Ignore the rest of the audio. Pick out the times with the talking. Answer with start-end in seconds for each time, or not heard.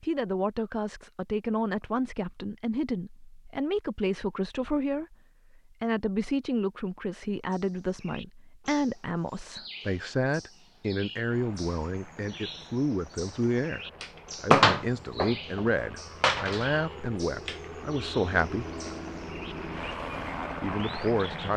0.0-13.8, 14.4-18.6, 20.6-21.5.